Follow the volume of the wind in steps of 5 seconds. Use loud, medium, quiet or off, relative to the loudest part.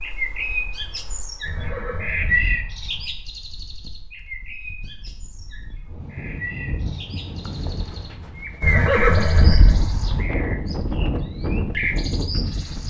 quiet, medium, loud.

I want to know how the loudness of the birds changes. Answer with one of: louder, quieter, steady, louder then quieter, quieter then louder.
quieter then louder.